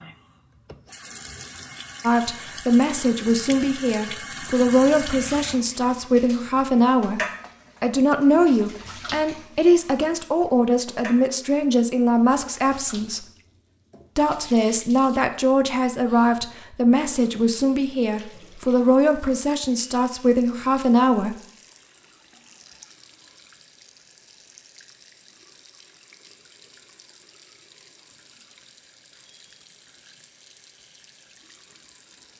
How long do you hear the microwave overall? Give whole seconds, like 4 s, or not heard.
not heard.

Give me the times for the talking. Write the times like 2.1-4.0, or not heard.
2.0-13.2, 14.2-21.4.